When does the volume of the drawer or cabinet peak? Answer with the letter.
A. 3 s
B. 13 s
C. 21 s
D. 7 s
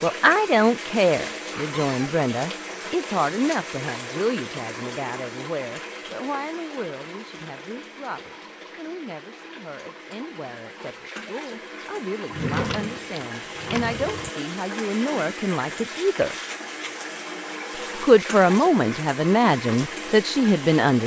B.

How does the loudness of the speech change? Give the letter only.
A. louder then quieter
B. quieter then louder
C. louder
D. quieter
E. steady
B.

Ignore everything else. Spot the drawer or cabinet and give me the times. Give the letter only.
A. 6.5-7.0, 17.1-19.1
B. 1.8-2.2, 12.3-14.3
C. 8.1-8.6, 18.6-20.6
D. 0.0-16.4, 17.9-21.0
B.